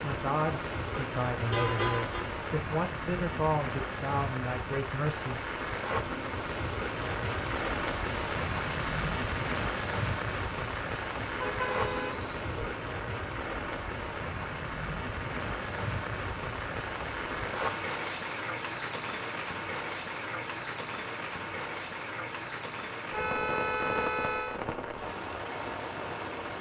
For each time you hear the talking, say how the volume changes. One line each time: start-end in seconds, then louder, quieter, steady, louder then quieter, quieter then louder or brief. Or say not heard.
0.0-5.8 steady.